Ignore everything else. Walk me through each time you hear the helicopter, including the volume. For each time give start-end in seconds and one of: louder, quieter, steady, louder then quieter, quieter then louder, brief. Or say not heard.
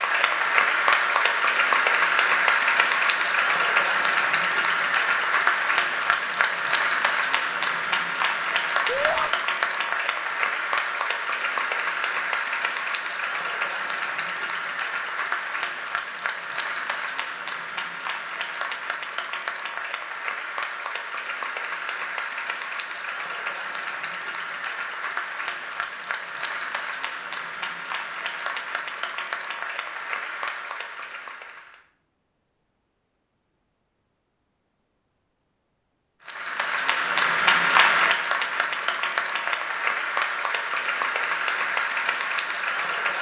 not heard.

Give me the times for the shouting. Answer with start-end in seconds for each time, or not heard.
8.8-9.3.